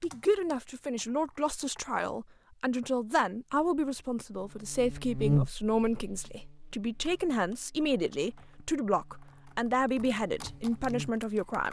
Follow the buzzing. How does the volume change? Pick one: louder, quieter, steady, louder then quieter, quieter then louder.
quieter then louder.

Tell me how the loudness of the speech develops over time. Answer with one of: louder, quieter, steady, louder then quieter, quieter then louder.
steady.